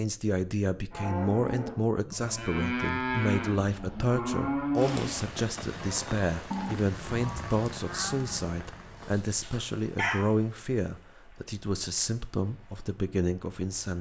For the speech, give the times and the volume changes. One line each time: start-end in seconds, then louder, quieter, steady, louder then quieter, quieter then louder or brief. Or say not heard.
0.0-13.9 steady.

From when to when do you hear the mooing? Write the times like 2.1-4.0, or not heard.
0.9-8.5.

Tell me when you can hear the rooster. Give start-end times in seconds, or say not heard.
9.0-10.2.